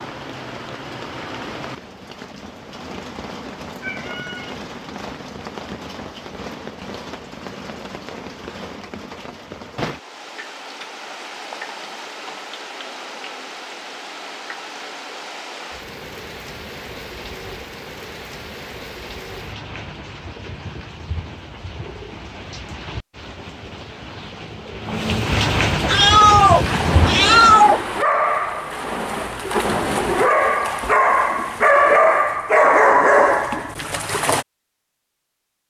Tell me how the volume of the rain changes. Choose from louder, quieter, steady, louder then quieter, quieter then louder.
louder.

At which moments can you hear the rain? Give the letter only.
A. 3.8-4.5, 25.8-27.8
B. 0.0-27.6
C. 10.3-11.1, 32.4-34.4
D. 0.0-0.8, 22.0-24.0
B.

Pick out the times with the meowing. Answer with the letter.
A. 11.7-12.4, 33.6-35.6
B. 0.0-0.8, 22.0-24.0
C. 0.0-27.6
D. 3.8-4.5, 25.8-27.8
D.